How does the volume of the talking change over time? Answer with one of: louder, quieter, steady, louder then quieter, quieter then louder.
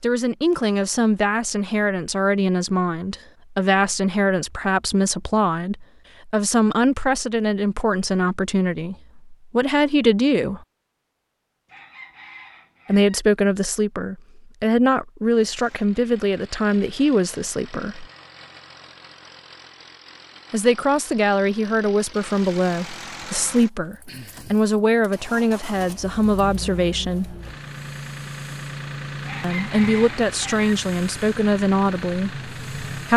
steady.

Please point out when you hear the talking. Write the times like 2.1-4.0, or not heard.
0.0-10.6, 12.8-18.1, 20.5-27.4, 29.4-33.1.